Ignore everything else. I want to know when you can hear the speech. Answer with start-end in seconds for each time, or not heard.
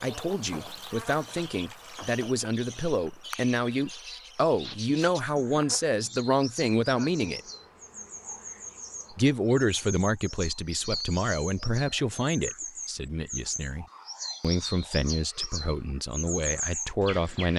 0.0-7.4, 9.1-17.5.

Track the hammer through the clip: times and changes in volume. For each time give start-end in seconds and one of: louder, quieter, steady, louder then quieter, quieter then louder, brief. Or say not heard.
not heard.